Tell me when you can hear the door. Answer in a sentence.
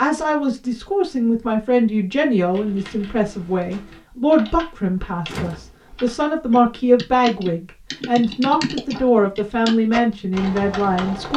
You can hear the door from 5.2 to 5.9 s.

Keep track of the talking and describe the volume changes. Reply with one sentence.
The loudness of the talking stays about the same.